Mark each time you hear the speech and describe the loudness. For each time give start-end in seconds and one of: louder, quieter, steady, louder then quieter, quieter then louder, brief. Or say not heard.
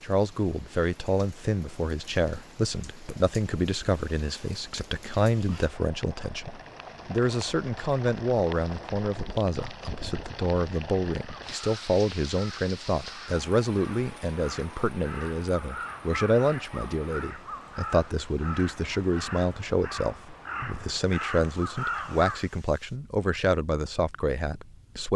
0.0-25.1 steady.